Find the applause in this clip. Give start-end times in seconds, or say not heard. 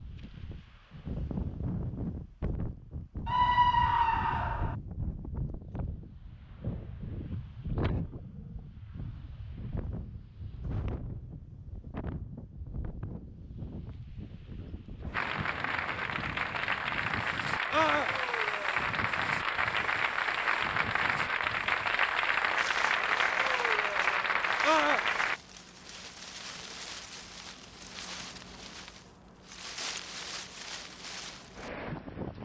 15.1-25.4.